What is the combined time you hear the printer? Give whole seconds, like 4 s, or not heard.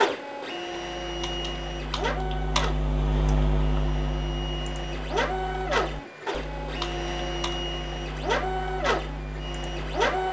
10 s.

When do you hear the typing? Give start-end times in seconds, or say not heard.
0.7-10.2.